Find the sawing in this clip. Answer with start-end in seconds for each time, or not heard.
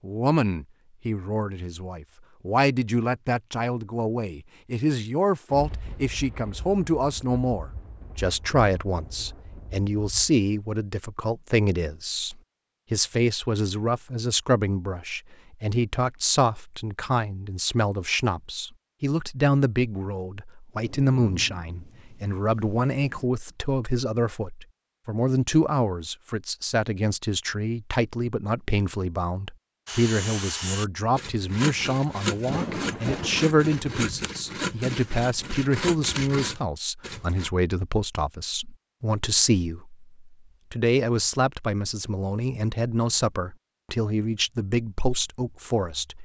29.9-37.5.